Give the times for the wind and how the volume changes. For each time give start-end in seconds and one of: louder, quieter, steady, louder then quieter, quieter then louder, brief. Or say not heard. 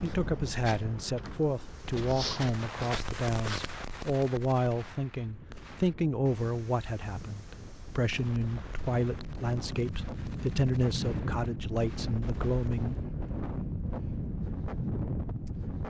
0.0-15.8 quieter then louder.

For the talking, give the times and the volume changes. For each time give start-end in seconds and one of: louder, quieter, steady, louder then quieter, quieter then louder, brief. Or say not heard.
0.0-12.9 steady.